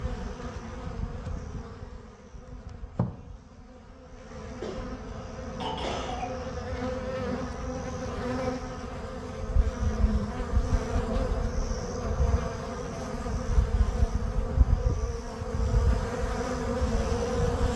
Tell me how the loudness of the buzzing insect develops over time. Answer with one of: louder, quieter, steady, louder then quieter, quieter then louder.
louder.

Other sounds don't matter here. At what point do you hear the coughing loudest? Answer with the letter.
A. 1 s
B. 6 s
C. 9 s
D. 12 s
B.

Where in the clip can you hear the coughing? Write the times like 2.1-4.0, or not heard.
4.6-6.3.